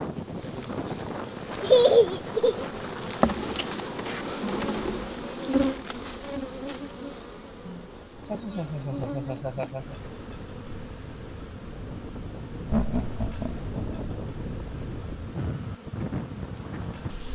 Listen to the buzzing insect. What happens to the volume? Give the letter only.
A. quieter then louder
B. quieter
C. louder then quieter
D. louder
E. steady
B.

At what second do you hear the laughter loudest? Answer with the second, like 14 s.
2 s.